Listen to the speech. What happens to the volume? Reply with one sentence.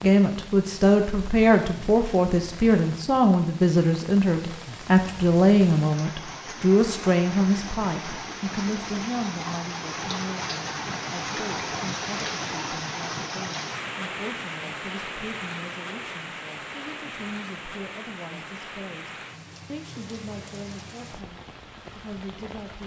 The loudness of the speech goes down.